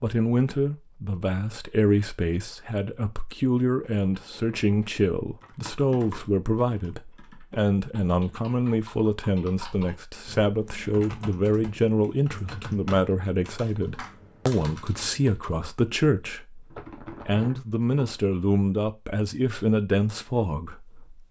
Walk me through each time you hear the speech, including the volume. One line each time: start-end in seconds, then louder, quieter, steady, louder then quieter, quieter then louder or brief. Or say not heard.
0.0-21.2 steady.